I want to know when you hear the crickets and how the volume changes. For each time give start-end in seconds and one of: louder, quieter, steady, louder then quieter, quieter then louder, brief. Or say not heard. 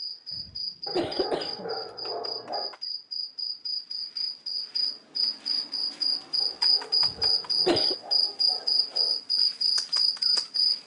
0.0-10.8 louder.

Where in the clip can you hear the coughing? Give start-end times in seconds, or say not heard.
0.3-1.7, 7.0-8.0.